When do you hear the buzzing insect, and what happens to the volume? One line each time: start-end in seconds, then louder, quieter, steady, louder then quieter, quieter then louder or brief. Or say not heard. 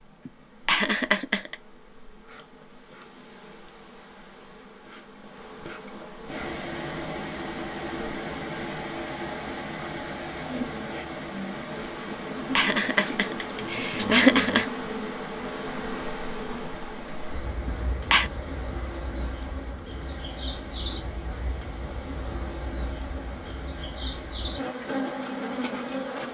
0.0-26.2 louder.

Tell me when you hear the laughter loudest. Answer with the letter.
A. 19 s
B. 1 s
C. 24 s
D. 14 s
D.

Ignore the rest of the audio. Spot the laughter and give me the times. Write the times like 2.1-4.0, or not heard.
0.2-1.6, 12.1-14.7, 17.6-18.3.